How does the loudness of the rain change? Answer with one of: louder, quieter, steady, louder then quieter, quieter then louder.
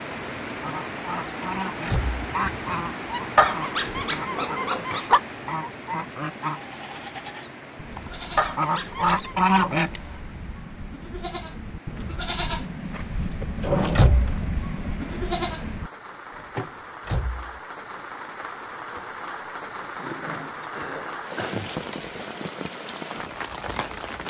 quieter then louder.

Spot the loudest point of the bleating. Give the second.
14 s.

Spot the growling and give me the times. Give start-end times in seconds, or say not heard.
3.4-5.2, 8.3-9.3, 19.9-21.8.